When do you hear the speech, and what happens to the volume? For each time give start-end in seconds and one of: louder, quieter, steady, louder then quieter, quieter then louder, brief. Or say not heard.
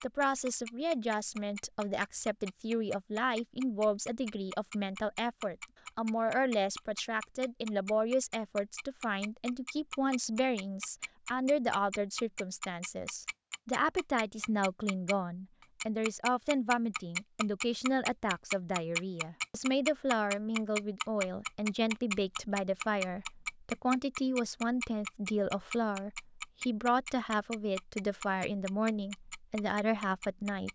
0.0-30.7 steady.